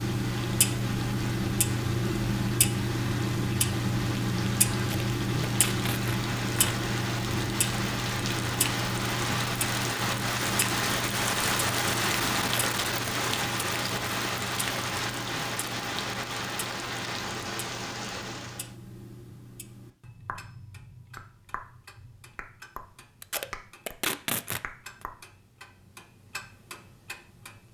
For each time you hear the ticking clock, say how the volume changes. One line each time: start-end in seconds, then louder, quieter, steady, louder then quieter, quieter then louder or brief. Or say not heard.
0.0-27.6 quieter.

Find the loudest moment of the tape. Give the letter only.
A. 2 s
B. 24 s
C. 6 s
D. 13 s
B.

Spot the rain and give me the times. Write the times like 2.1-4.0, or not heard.
0.0-18.8.